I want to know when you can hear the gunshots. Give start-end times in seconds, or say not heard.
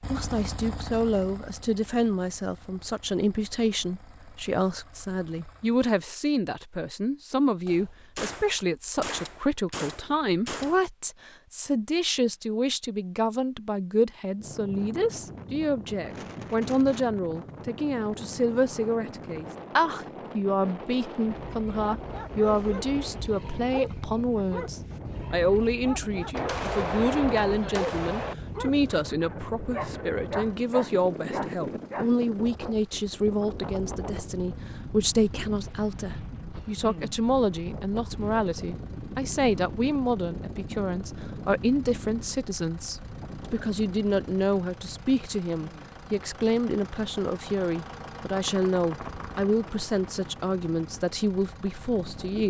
7.7-10.8, 26.3-28.4, 48.4-50.4.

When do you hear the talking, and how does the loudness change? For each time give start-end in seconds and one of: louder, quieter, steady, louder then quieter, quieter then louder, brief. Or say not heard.
0.1-52.4 steady.